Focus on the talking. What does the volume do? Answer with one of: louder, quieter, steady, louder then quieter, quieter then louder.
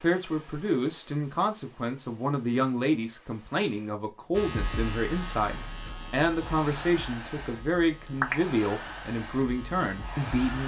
steady.